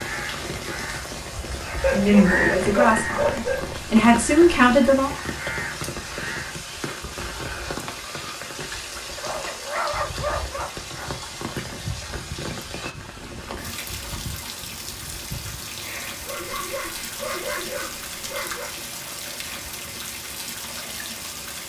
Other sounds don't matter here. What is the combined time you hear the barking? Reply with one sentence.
You can hear the barking for 6 seconds altogether.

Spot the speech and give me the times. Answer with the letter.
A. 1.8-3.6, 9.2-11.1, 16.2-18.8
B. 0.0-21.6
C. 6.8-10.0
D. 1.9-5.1
D.